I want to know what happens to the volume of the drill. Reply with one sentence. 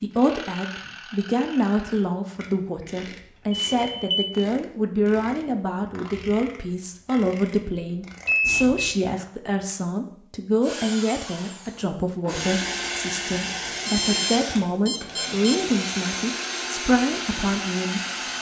The volume of the drill goes up.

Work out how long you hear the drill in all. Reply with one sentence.
You can hear the drill for 8 seconds altogether.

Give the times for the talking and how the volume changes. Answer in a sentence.
The talking can be heard from 0.0 to 18.3 s, at a steady volume.